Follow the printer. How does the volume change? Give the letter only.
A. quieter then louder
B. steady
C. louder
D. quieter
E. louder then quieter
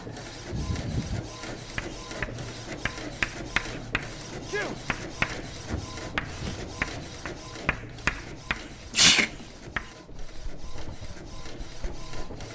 D.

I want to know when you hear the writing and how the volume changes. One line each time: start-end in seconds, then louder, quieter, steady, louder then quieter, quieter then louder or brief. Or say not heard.
1.6-12.4 quieter.